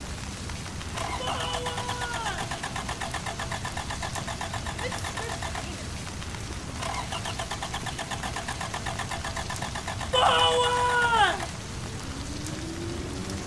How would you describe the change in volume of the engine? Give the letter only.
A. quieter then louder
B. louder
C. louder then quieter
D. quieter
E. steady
E.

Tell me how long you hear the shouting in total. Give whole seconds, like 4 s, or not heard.
4 s.